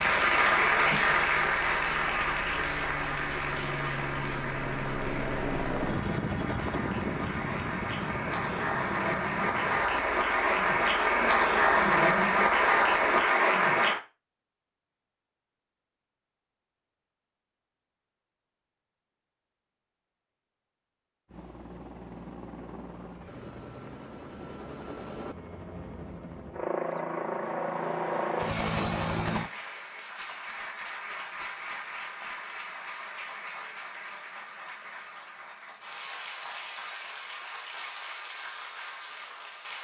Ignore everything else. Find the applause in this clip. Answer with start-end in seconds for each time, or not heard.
0.0-14.0, 29.2-39.7.